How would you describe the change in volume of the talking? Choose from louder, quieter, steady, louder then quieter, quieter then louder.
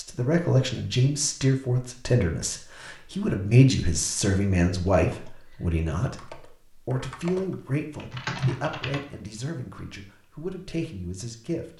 quieter.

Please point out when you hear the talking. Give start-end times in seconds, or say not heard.
0.0-6.2, 6.8-11.7.